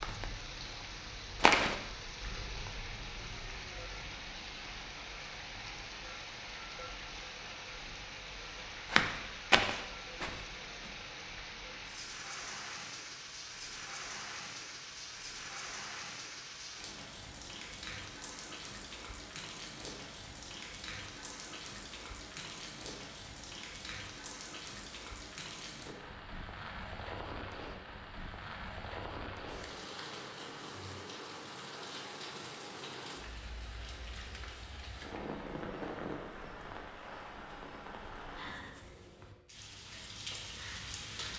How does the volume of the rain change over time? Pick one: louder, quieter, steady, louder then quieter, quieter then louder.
steady.